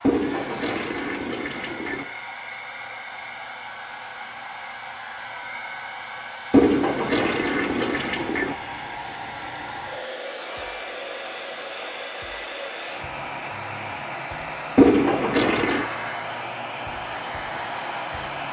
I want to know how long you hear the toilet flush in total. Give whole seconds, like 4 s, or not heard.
5 s.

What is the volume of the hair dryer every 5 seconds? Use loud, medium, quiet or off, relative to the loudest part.
medium, loud, loud, loud.